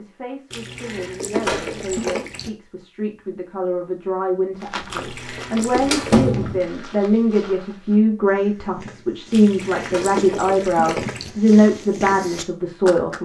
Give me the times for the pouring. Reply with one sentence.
You can hear the pouring from 0.5 to 2.5 s, from 4.9 to 6.2 s and from 9.3 to 11.3 s.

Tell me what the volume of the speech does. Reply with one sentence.
The loudness of the speech goes up.